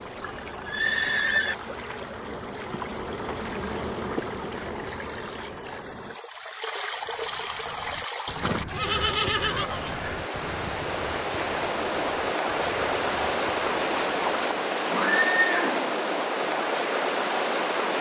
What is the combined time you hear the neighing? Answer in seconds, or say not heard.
4 s.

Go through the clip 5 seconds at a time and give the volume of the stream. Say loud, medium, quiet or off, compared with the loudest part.
quiet, medium, loud, loud.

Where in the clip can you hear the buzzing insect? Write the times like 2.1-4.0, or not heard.
0.0-6.2.